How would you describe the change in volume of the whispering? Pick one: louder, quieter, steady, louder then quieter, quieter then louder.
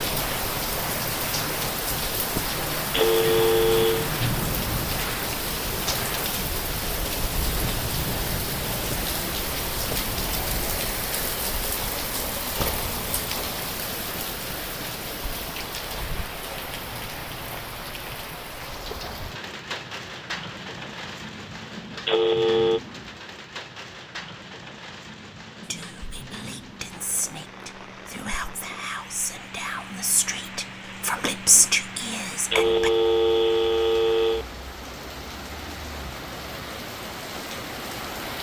louder.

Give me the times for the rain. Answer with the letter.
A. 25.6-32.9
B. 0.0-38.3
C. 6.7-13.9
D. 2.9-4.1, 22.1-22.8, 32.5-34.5
B.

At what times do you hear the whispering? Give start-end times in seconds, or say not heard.
25.6-32.9.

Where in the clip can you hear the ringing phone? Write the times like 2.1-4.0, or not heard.
2.9-4.1, 22.1-22.8, 32.5-34.5.